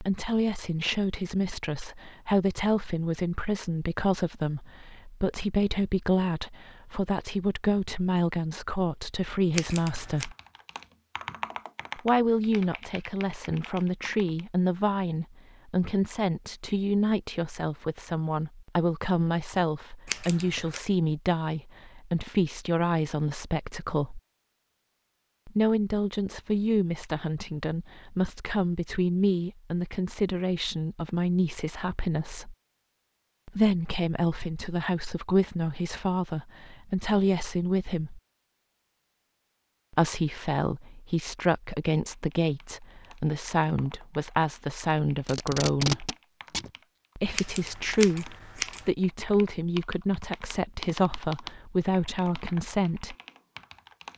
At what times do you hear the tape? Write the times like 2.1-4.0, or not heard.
45.2-46.7.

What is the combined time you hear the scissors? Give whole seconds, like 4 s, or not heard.
3 s.